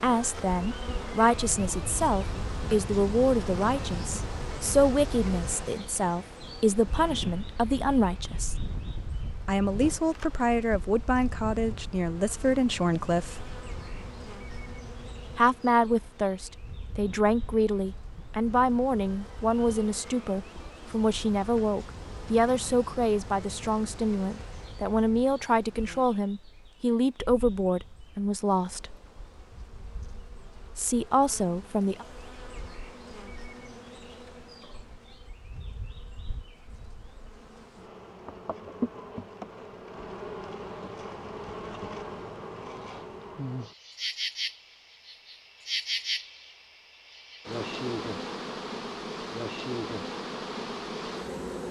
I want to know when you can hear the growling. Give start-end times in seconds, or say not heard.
not heard.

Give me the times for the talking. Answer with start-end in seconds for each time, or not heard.
0.0-8.6, 9.4-13.6, 15.3-28.9, 30.8-32.0.